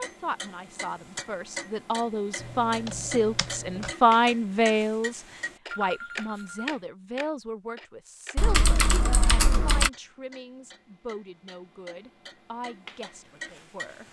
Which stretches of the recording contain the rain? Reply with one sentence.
You can't hear the rain here.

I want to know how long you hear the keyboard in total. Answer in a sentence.
The keyboard can be heard for 3 seconds in total.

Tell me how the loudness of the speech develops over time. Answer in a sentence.
The loudness of the speech goes up, then down.